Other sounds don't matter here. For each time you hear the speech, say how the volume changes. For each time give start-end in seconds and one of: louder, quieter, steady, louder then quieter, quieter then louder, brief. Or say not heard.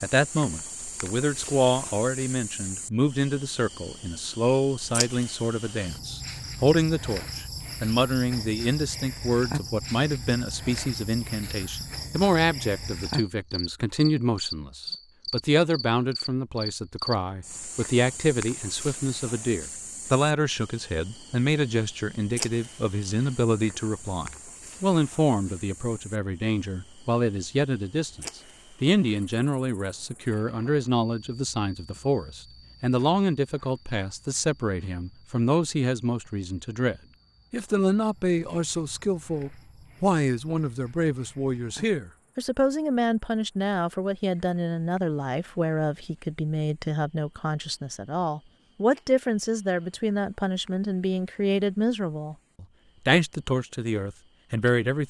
0.0-55.0 steady.